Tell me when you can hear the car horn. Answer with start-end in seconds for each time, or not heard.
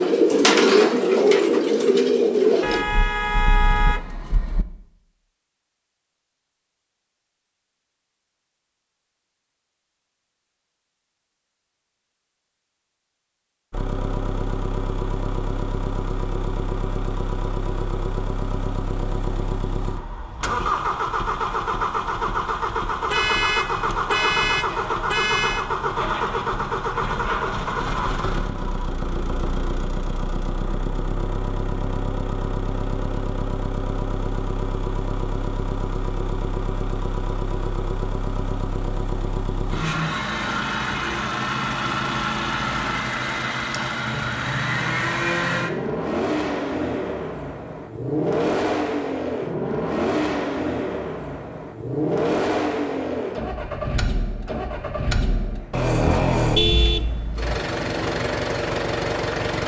2.6-4.7, 23.1-25.6, 55.7-57.2.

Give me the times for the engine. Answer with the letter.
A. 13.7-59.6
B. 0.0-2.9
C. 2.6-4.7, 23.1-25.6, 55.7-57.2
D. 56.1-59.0
A.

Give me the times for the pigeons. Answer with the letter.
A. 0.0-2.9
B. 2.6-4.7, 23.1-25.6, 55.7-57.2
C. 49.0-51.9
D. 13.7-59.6
A.